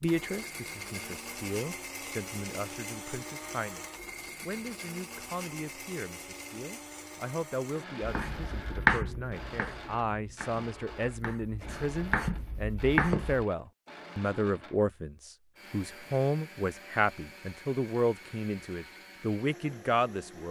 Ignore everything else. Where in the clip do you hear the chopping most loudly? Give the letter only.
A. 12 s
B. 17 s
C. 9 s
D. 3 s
C.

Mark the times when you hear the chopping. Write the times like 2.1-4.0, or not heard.
8.0-13.4.